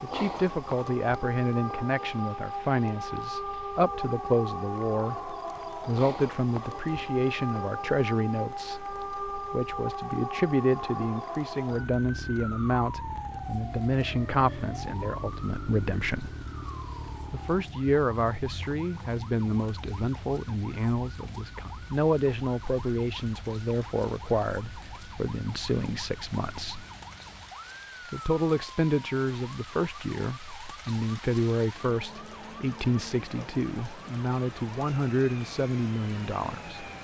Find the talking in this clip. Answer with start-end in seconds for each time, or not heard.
0.0-16.4, 17.3-26.9, 28.1-36.9.